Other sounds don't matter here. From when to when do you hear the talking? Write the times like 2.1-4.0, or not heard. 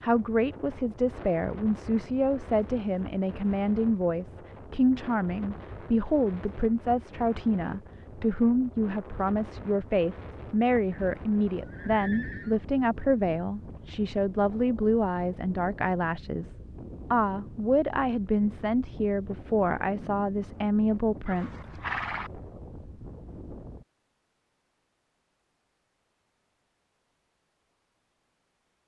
0.0-21.5.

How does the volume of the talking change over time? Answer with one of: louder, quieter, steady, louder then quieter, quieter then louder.
steady.